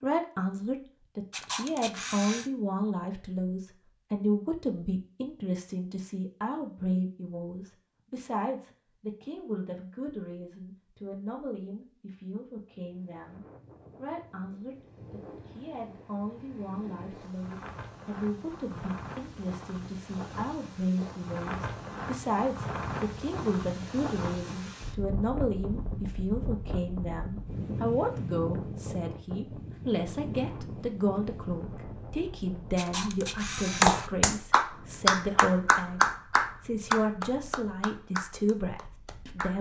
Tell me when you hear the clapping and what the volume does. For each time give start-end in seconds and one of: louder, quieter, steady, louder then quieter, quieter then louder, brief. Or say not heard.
33.8-39.5 quieter.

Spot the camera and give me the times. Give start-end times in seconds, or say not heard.
1.3-2.5, 32.8-34.1.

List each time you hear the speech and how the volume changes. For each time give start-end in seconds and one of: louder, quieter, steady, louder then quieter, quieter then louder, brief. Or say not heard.
0.0-39.5 quieter then louder.